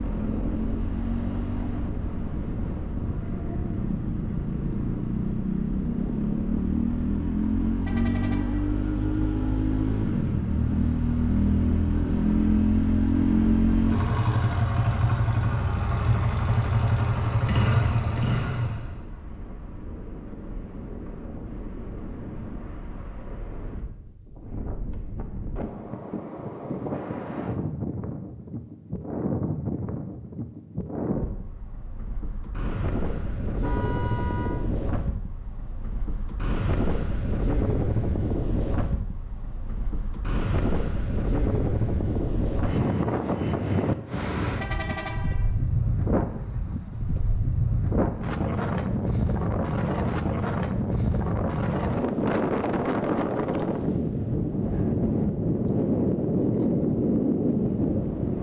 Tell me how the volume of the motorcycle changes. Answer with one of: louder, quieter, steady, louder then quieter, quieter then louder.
louder.